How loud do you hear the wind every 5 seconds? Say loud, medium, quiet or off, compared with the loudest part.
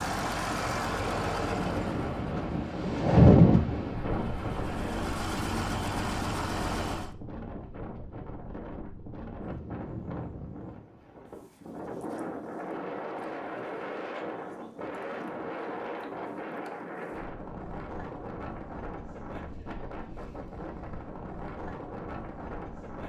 loud, quiet, quiet, quiet, quiet.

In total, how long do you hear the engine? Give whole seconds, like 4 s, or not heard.
7 s.